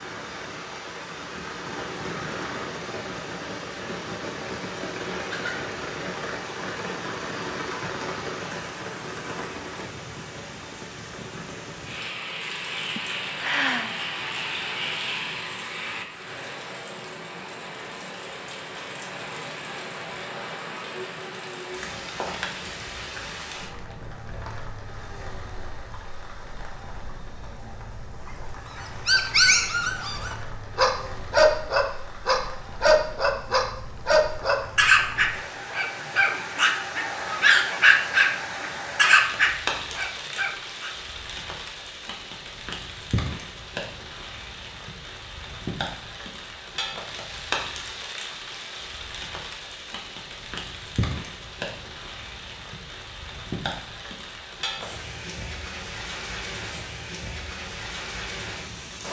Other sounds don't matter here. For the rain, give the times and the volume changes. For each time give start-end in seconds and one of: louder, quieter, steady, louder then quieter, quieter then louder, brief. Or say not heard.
0.0-59.0 quieter then louder.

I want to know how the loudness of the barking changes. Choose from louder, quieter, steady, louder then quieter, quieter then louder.
steady.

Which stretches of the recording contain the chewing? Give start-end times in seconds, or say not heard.
not heard.